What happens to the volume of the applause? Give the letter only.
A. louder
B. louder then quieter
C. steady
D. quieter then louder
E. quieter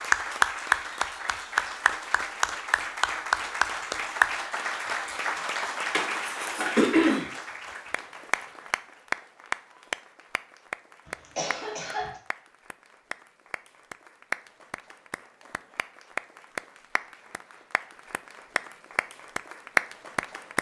D.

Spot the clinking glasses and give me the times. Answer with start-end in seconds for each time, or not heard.
not heard.